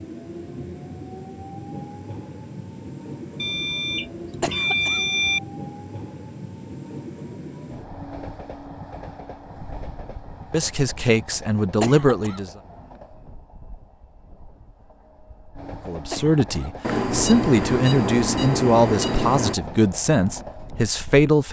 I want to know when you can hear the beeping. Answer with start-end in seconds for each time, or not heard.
3.4-5.4, 16.8-19.6.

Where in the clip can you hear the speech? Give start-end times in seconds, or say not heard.
10.5-12.5, 15.8-21.4.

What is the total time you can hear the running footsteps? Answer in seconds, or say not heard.
not heard.